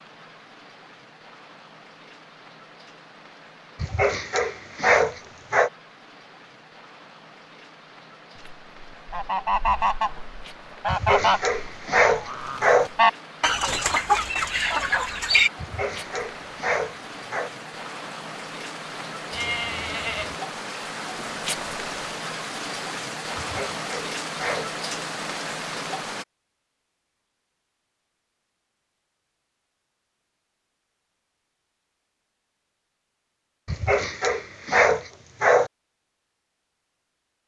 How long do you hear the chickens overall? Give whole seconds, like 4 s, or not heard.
7 s.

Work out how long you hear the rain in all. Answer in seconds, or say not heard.
26 s.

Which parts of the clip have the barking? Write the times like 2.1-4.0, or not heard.
3.8-5.7, 10.8-12.9, 15.6-17.5, 23.4-24.7, 33.6-35.7.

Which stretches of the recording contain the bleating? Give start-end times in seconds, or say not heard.
19.3-20.4.